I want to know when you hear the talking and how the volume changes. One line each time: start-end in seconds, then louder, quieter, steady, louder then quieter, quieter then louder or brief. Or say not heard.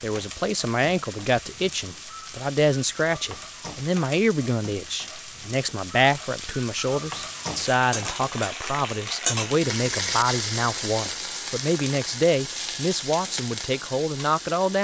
0.0-14.8 steady.